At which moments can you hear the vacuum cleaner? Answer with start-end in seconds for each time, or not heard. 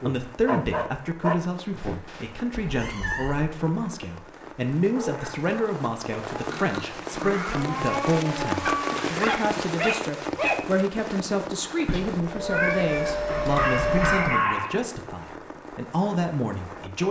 12.6-14.4.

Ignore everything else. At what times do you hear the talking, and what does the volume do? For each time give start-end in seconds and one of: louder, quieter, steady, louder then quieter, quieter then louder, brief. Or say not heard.
0.0-17.0 steady.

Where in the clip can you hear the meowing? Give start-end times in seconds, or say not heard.
2.5-3.5, 6.5-9.0, 11.8-14.3.